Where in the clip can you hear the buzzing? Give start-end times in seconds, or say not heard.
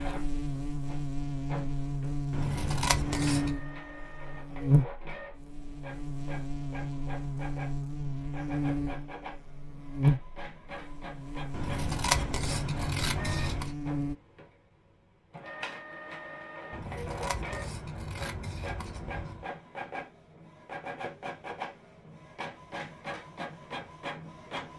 0.0-14.2.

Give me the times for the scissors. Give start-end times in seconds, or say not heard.
2.3-3.5, 11.5-13.8, 16.7-19.4.